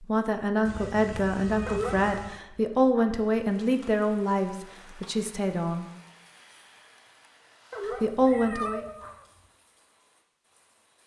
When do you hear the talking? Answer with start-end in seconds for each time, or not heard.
0.0-5.8, 8.0-8.8.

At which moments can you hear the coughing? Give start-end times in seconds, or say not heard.
not heard.